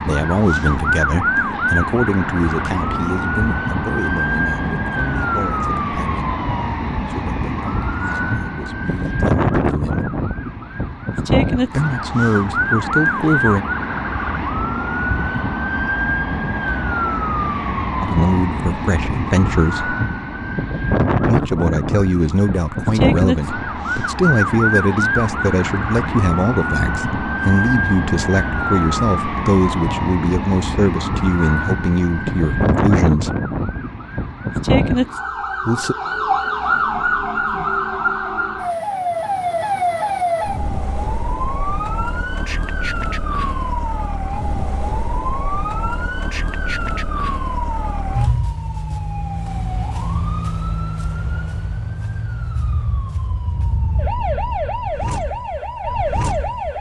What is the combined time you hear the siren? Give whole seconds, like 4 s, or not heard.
57 s.